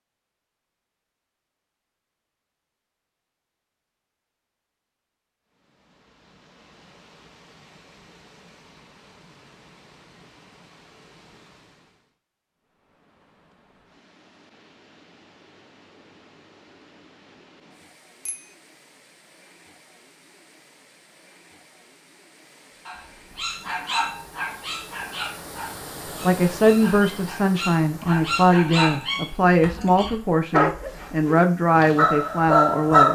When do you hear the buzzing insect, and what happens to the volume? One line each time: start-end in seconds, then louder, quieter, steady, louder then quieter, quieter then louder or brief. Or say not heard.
not heard.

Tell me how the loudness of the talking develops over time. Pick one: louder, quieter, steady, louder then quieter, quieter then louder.
steady.